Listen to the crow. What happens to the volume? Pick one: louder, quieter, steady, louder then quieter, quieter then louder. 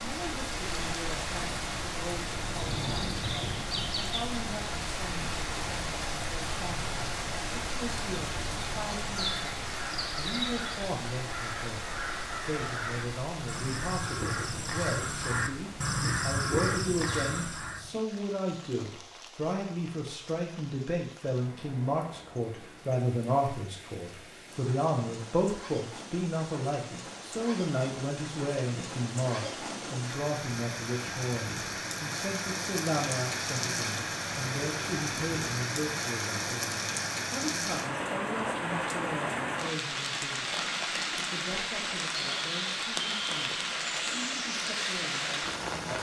louder.